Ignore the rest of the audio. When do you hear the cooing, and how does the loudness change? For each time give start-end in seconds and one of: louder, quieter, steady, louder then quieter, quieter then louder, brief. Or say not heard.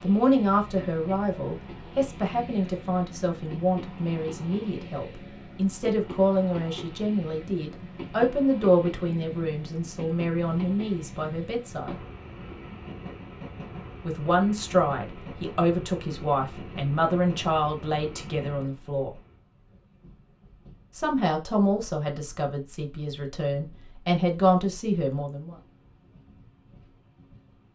not heard.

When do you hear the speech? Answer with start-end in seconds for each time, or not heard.
0.0-11.9, 14.1-19.1, 20.9-25.6.